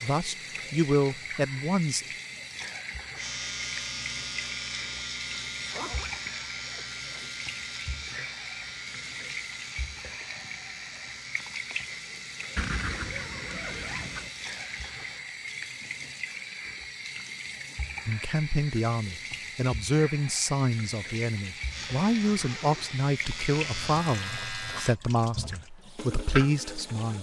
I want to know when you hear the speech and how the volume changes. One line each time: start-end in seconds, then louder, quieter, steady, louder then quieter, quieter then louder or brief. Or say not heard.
0.0-2.0 brief
18.1-27.1 steady.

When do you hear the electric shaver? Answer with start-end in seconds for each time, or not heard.
3.1-15.2, 21.6-24.9.